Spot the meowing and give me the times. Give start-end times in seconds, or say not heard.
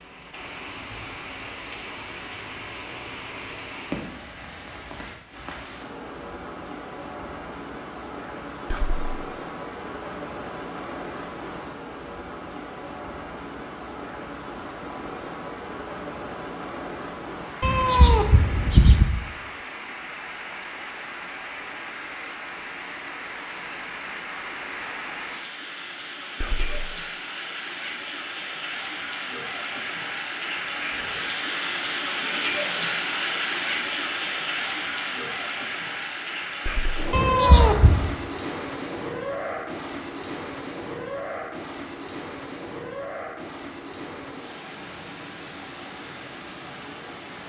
17.6-19.1, 37.1-38.1.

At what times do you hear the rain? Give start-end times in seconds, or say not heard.
0.0-47.4.